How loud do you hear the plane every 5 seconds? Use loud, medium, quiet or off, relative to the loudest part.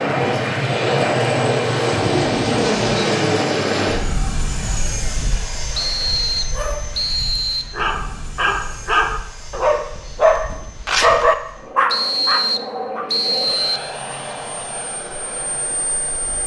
loud, quiet, quiet, quiet.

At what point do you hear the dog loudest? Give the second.
11 s.